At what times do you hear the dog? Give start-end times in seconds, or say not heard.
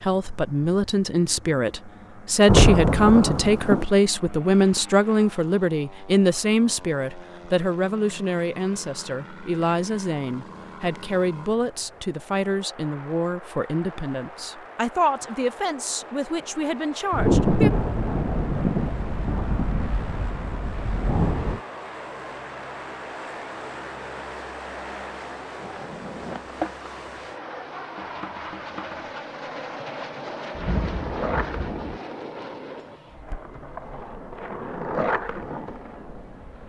not heard.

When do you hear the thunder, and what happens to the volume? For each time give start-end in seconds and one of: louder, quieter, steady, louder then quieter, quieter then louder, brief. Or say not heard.
2.5-3.9 brief
17.1-21.6 quieter
30.6-32.0 brief.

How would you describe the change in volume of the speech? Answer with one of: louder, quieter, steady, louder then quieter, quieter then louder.
quieter.